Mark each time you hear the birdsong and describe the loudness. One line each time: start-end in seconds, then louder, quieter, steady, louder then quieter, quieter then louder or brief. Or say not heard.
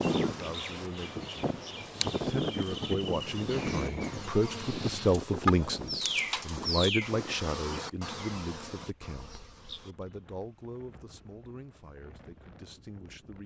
0.0-7.1 louder.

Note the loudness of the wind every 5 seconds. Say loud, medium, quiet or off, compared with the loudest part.
loud, medium, quiet.